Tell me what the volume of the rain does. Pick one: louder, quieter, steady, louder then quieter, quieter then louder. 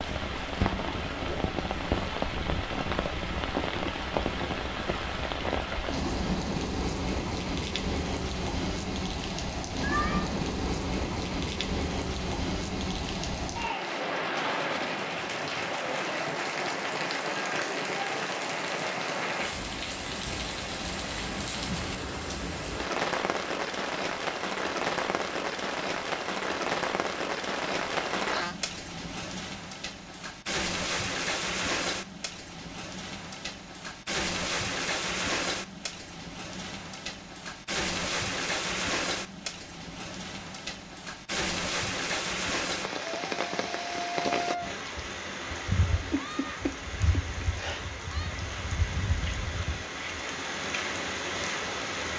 steady.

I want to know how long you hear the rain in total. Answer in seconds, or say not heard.
52 s.